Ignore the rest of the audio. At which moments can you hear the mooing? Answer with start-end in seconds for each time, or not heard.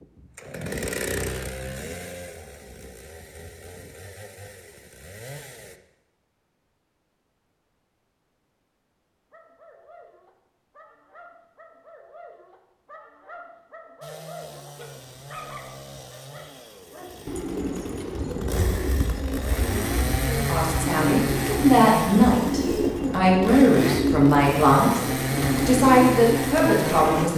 not heard.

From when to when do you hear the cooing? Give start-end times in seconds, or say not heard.
17.2-27.3.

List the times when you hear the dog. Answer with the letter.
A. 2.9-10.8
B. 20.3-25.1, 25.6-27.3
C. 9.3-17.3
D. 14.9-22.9
C.